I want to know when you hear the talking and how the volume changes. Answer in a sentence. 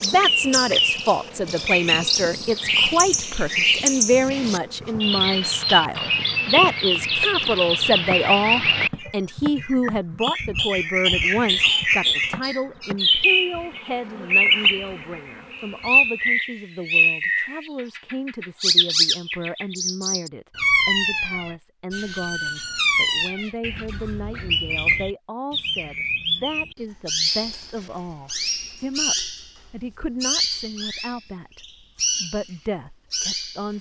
The talking can be heard from 0.0 to 33.7 s, getting quieter.